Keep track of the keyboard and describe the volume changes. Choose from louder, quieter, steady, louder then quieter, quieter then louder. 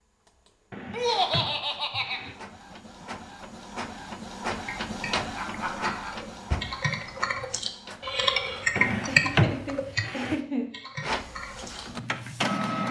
louder then quieter.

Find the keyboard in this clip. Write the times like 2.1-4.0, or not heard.
4.6-11.8.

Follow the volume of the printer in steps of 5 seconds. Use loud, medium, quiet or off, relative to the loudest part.
medium, medium, loud.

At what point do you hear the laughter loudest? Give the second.
1 s.